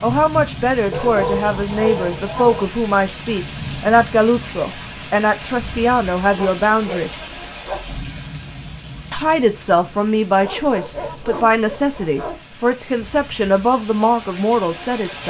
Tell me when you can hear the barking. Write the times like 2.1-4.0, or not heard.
0.9-2.7, 6.3-8.0, 10.4-12.4.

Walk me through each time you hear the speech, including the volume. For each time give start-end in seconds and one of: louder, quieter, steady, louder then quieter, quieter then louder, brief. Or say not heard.
0.0-7.1 steady
9.1-15.2 steady.